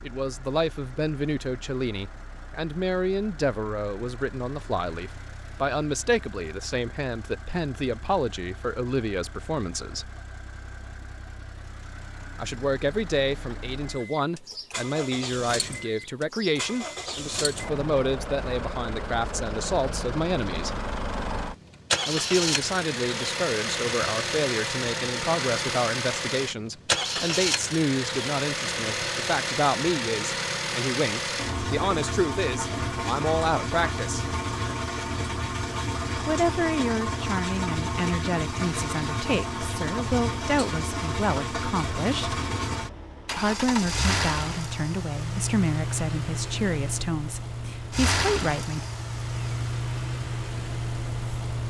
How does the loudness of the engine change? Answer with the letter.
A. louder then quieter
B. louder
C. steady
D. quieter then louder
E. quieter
B.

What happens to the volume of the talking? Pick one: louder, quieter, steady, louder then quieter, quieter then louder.
steady.